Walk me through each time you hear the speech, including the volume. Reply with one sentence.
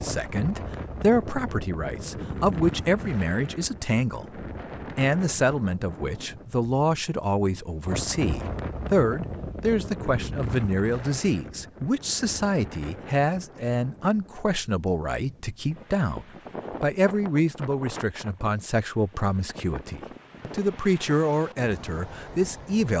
The speech can be heard from 0.0 to 22.9 s, at a steady volume.